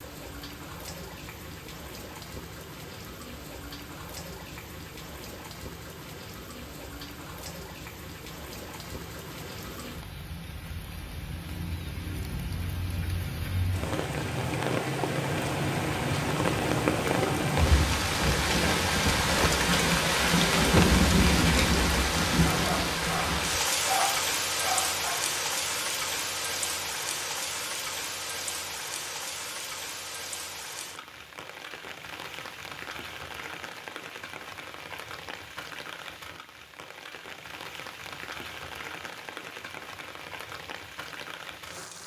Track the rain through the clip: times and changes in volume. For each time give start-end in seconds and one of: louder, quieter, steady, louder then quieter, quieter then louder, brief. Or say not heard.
0.0-42.0 louder then quieter.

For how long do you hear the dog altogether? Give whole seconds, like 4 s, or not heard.
3 s.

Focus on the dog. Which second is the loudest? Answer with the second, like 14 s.
24 s.